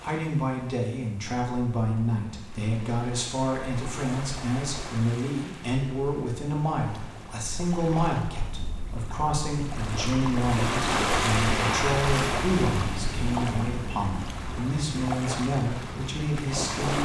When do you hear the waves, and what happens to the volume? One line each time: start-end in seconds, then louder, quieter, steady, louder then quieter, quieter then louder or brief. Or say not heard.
0.0-17.0 louder then quieter.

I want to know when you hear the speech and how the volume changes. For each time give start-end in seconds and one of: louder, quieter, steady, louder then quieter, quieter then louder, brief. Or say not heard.
0.0-17.0 steady.